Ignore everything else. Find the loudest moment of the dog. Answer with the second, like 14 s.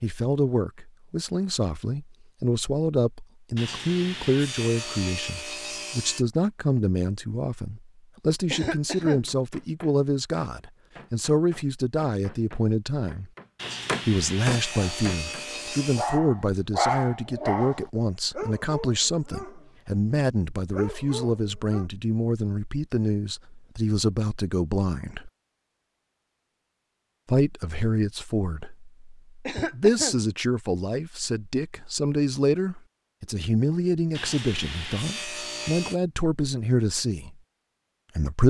17 s.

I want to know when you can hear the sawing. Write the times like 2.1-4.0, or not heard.
3.5-6.2, 13.6-16.2, 34.1-36.0.